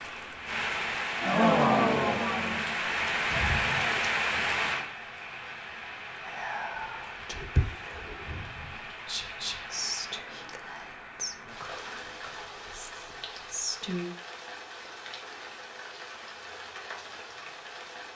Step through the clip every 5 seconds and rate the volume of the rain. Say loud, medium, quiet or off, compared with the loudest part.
loud, quiet, quiet, quiet.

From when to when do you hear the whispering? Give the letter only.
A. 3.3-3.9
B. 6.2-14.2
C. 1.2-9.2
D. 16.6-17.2
B.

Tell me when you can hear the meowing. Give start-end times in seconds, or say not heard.
3.3-3.9.